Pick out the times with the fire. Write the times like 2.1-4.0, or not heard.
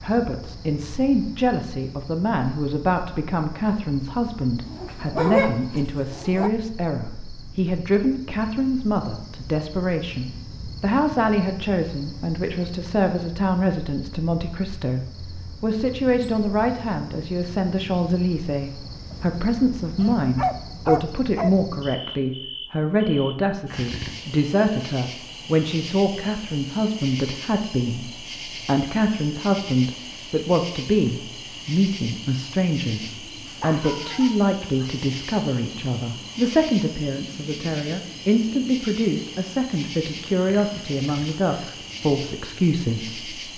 not heard.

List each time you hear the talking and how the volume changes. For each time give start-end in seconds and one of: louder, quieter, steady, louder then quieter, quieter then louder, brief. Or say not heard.
0.0-43.4 steady.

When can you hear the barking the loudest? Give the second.
5 s.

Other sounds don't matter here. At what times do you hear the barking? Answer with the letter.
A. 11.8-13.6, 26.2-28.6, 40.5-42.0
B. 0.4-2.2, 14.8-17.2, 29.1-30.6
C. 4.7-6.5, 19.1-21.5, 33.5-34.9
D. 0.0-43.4
C.